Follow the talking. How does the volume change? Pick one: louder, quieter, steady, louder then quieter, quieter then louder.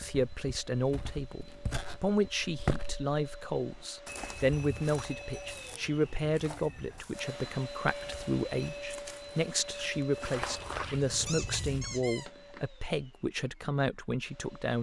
steady.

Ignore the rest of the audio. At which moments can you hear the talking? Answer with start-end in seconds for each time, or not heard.
0.0-14.7.